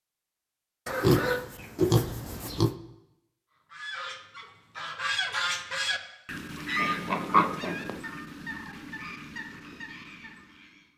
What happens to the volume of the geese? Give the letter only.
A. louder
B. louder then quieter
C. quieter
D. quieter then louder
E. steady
C.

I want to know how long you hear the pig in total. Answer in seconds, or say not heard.
3 s.